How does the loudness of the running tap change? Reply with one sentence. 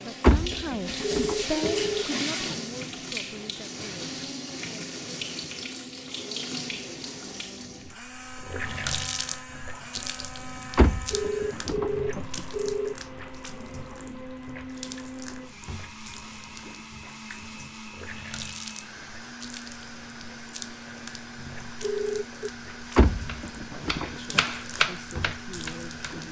The loudness of the running tap goes down.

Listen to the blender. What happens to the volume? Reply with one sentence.
The loudness of the blender stays about the same.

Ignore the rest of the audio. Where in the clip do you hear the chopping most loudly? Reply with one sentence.
The loudest moment of the chopping is at 25 seconds.